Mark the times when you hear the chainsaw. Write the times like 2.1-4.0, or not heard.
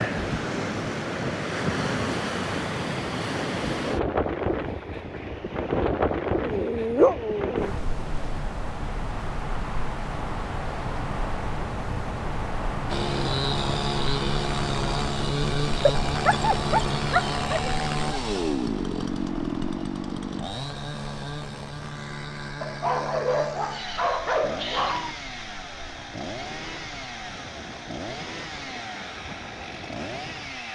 12.8-30.6.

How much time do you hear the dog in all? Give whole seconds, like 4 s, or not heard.
6 s.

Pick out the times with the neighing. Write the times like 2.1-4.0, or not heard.
not heard.